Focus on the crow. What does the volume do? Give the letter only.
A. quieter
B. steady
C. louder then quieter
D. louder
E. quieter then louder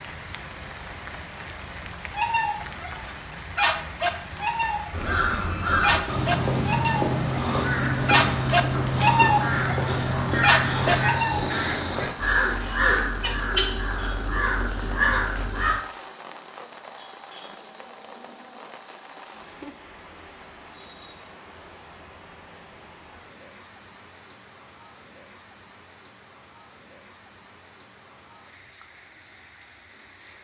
B.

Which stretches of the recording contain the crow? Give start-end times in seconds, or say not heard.
4.9-15.8.